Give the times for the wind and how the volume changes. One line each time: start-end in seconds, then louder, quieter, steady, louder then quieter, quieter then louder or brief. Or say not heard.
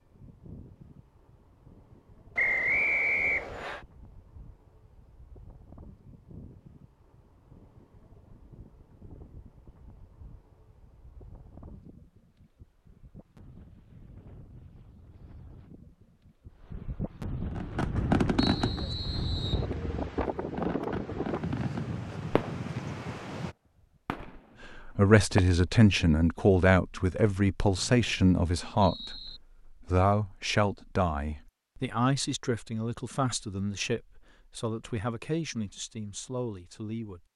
0.0-23.6 louder.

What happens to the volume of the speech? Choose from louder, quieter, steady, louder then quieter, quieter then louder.
quieter.